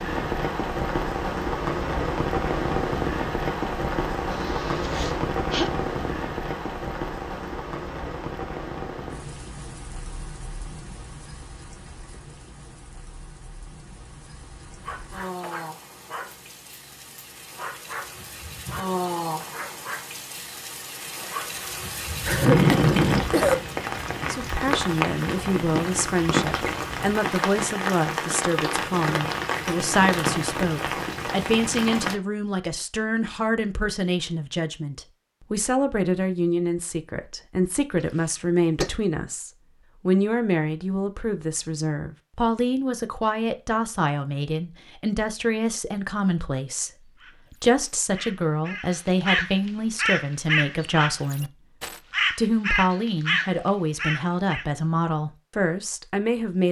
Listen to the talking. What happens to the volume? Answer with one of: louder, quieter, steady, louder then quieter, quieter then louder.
steady.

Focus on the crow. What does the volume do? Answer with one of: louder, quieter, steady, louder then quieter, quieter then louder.
louder.